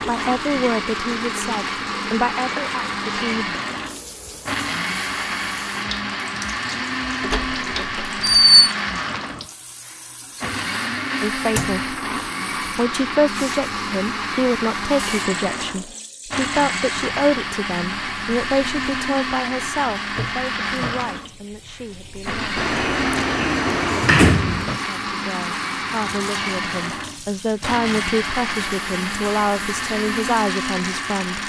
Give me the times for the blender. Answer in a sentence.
The blender can be heard from 0.0 to 31.4 s.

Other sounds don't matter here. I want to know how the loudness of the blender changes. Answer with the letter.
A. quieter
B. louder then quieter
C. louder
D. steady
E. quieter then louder
D.